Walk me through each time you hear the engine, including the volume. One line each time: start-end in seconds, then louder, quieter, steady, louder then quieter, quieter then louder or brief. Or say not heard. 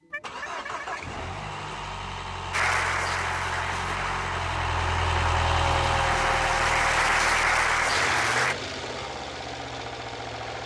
0.0-10.6 louder then quieter.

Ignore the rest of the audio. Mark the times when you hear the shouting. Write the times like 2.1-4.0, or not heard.
not heard.